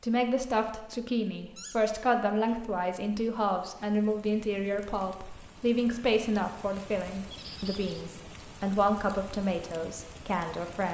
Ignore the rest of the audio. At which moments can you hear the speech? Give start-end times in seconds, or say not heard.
0.0-10.8.